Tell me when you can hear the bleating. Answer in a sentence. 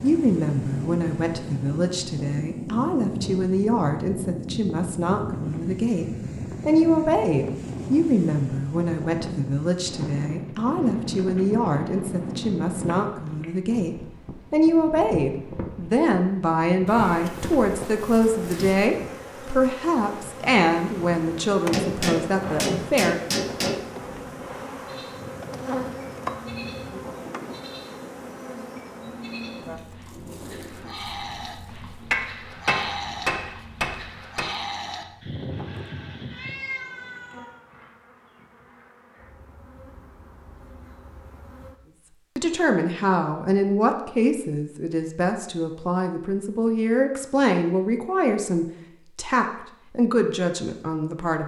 You can hear the bleating from 24.9 to 36.6 s.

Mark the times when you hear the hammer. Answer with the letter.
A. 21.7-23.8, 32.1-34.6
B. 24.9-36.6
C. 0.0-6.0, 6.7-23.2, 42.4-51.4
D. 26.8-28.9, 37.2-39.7
A.